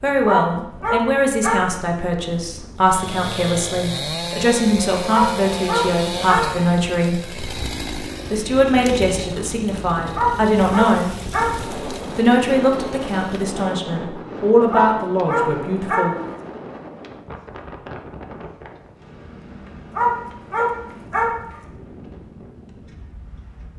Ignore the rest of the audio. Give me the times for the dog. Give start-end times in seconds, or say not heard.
0.2-1.6, 5.1-6.5, 10.2-11.5, 14.7-16.1, 19.9-21.3.